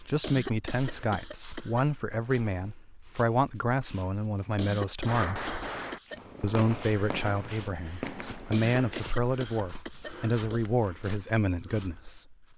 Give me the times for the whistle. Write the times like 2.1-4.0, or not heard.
not heard.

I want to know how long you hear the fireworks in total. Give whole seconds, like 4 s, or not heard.
4 s.